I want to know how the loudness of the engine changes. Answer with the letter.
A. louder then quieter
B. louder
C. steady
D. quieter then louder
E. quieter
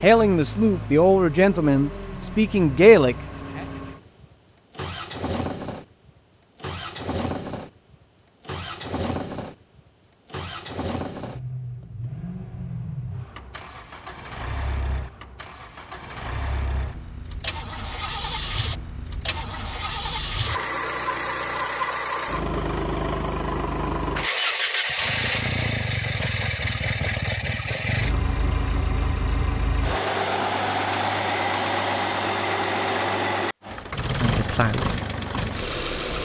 B.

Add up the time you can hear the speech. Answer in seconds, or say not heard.
4 s.